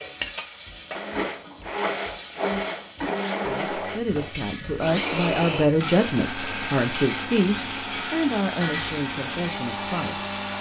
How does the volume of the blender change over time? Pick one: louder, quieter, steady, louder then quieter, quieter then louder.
steady.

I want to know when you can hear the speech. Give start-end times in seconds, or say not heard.
3.3-10.2.